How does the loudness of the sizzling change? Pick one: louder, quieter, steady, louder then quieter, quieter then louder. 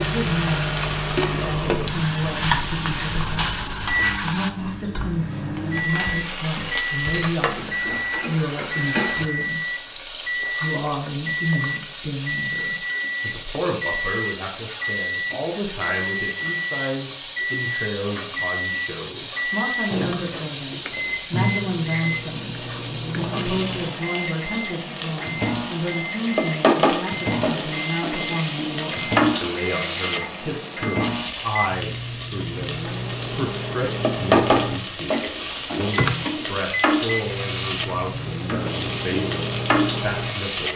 steady.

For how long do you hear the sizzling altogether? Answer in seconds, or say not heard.
41 s.